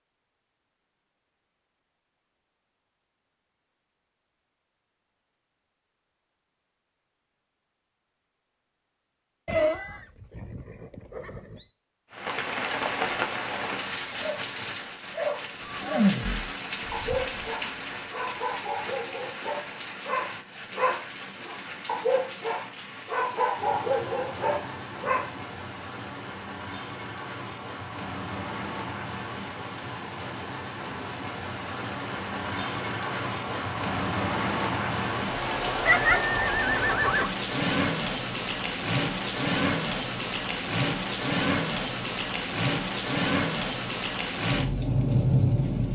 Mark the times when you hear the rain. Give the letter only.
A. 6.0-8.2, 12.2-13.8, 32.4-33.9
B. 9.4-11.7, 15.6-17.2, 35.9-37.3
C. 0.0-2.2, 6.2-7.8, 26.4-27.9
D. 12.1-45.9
D.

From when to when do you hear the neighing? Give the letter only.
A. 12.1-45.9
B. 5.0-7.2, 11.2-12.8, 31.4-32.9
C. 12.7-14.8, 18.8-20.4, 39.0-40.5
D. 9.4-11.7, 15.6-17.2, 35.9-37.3
D.